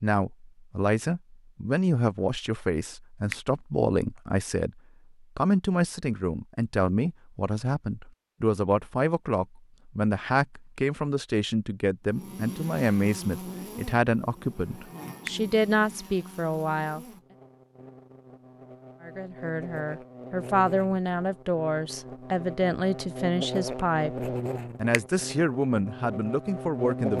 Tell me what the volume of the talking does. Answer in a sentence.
The volume of the talking stays about the same.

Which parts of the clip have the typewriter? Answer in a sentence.
You can't hear the typewriter here.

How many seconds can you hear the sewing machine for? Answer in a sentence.
You can't hear the sewing machine here.